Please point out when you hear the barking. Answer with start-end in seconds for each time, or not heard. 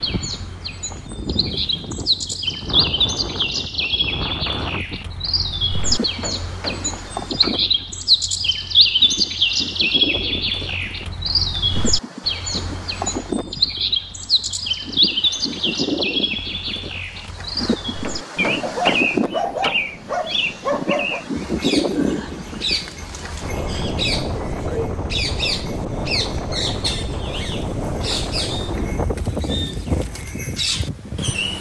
18.6-21.2.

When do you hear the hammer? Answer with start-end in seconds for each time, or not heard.
5.8-7.7, 18.0-19.8.